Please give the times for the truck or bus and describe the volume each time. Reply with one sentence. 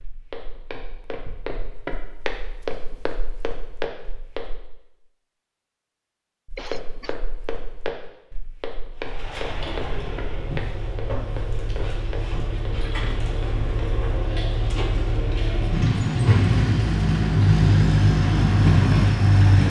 You can hear the truck or bus from 8.9 to 19.6 s, getting louder.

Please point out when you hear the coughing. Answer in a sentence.
You can hear the coughing from 6.5 to 7.2 s.